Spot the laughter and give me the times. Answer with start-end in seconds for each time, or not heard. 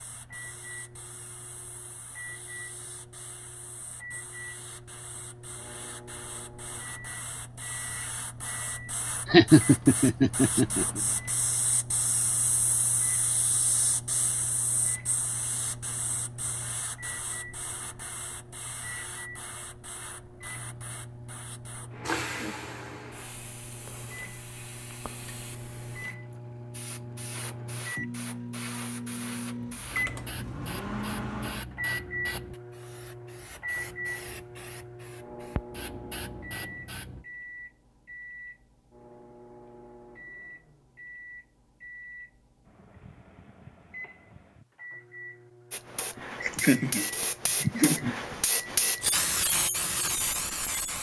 9.2-11.0, 46.4-48.4.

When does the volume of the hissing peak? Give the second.
49 s.